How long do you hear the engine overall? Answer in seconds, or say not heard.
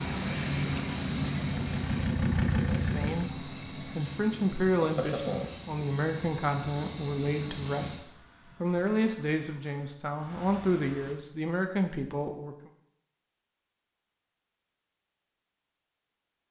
3 s.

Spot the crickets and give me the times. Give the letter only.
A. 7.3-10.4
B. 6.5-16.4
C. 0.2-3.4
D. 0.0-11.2
D.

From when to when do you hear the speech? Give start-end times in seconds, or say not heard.
2.8-12.7.